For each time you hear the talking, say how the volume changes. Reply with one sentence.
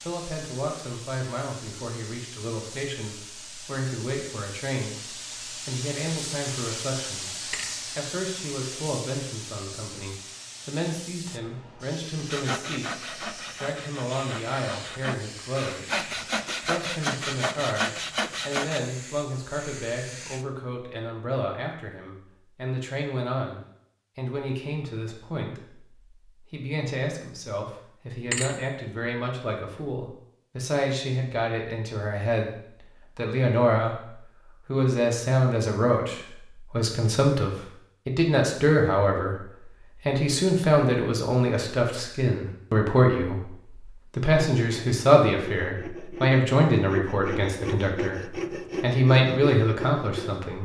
The talking can be heard from 0.0 to 50.6 s, getting louder.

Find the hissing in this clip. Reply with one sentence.
You can hear the hissing from 0.0 to 20.4 s.